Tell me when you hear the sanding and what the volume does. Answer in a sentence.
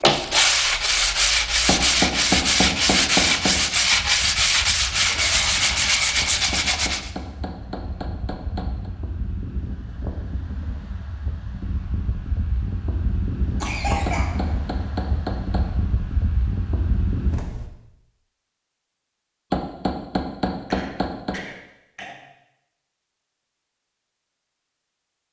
The sanding can be heard from 0.0 to 7.1 s, at a steady volume.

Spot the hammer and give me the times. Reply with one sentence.
The hammer can be heard from 1.6 to 3.6 s, from 6.5 to 8.9 s, from 14.1 to 15.8 s and from 19.5 to 21.4 s.